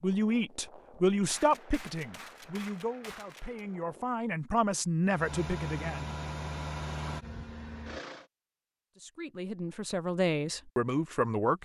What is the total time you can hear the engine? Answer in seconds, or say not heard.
3 s.